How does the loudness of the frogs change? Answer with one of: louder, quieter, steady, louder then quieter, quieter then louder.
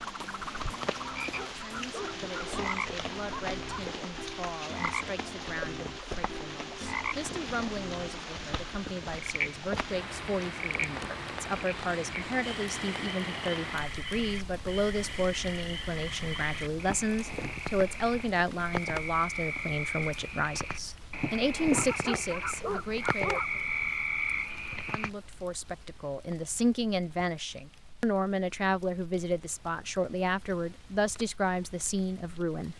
louder.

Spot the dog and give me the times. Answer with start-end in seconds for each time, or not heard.
1.0-4.0, 21.7-23.9.